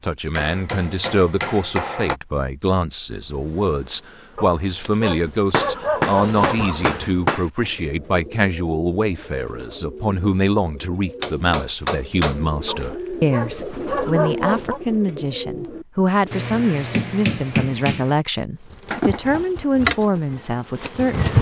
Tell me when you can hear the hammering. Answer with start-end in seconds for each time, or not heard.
0.3-2.1, 5.5-7.5, 11.2-12.8, 16.3-18.1.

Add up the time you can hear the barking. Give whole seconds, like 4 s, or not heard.
5 s.